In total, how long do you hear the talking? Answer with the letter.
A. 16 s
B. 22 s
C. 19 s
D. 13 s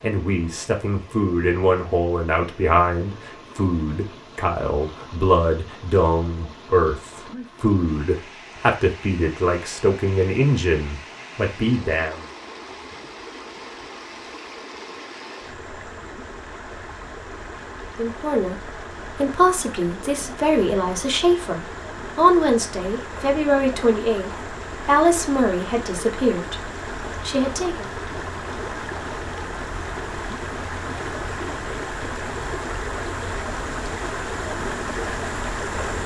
B.